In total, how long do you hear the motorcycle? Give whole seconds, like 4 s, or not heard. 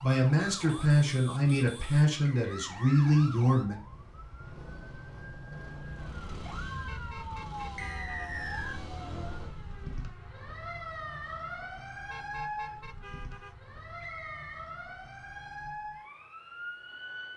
4 s.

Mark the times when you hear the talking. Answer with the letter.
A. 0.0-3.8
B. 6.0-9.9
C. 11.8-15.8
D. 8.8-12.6
A.